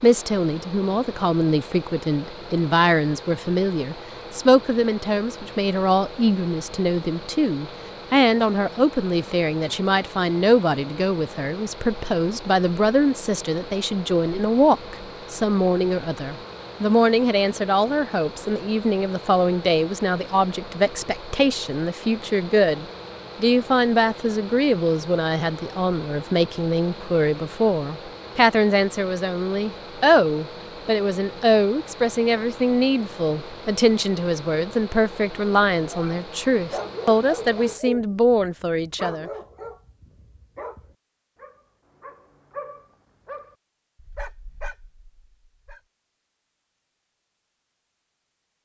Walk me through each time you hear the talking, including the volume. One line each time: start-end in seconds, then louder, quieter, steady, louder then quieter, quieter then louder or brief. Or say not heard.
0.0-39.3 steady.